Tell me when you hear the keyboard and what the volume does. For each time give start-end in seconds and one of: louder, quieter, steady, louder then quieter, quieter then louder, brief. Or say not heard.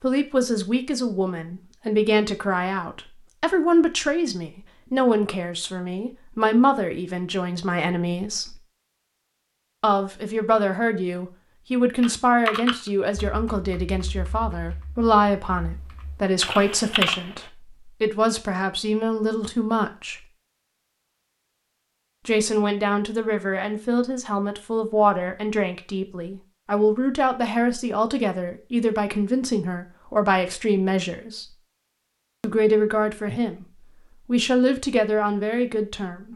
12.0-17.5 quieter then louder.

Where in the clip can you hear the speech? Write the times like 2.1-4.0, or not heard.
0.0-8.6, 9.8-20.2, 22.2-31.6, 32.4-36.3.